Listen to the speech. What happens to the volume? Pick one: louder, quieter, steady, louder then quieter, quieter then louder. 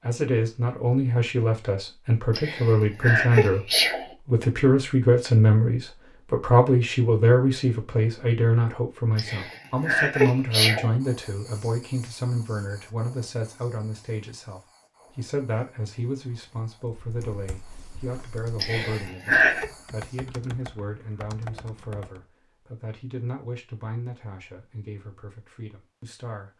quieter.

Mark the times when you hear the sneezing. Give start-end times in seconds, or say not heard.
2.4-4.0, 9.2-10.9, 18.6-19.6.